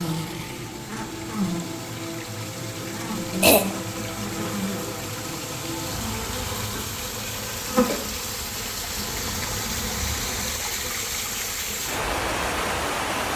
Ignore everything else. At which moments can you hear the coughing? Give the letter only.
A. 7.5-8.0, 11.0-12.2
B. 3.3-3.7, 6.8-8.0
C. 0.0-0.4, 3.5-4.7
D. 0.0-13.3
B.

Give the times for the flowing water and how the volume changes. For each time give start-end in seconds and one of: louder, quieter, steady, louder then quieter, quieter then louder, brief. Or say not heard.
0.0-13.3 louder.